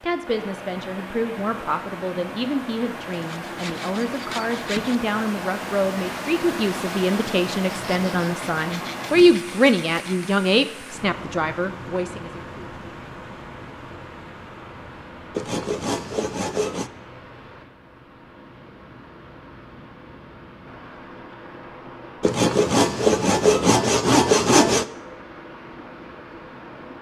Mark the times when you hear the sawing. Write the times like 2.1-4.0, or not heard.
3.1-5.0, 7.7-10.3, 15.3-16.9, 22.2-24.9.